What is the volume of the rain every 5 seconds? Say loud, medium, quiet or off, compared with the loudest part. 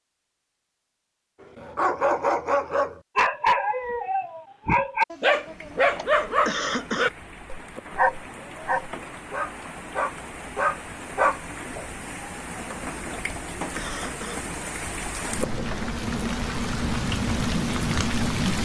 off, quiet, medium, loud.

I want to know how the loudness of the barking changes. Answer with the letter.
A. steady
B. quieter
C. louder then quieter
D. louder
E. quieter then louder
A.